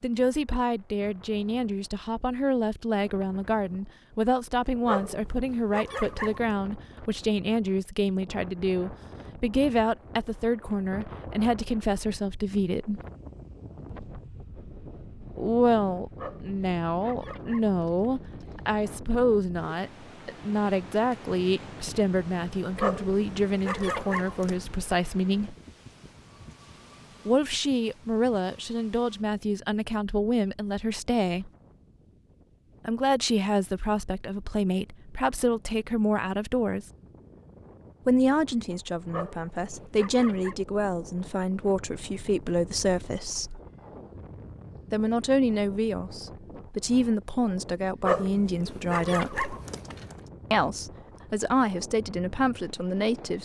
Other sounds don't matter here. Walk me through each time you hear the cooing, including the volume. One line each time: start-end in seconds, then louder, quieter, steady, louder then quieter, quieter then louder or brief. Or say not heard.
not heard.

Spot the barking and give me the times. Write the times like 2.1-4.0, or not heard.
4.8-6.5, 16.1-18.6, 22.8-24.6, 39.1-40.5, 48.0-50.1.